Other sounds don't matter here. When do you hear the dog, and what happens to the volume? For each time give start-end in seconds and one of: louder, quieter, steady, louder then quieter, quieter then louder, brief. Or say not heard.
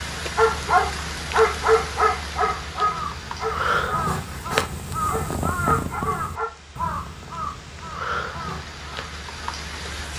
0.3-6.5 quieter.